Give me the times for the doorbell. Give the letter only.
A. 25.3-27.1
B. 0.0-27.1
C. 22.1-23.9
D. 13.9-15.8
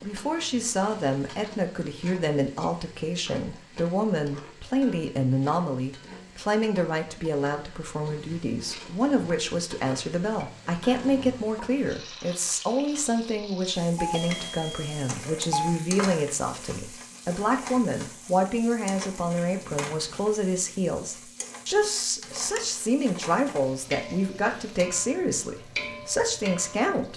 D.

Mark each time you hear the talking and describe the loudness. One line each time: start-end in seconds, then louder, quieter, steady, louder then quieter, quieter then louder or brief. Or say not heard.
0.0-27.1 steady.